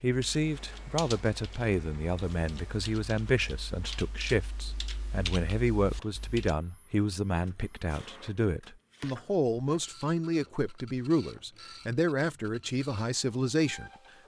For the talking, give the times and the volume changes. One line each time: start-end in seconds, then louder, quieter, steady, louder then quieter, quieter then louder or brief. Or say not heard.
0.0-14.2 steady.